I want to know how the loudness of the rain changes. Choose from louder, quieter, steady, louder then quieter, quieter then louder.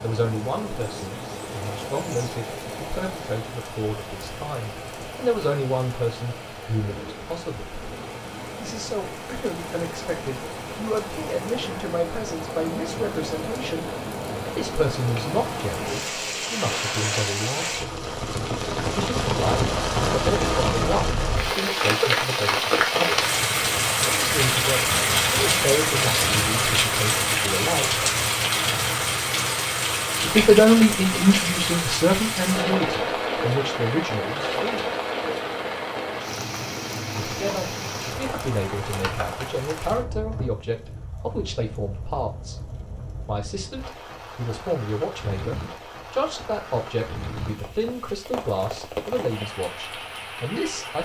louder then quieter.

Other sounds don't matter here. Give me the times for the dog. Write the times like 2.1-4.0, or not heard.
not heard.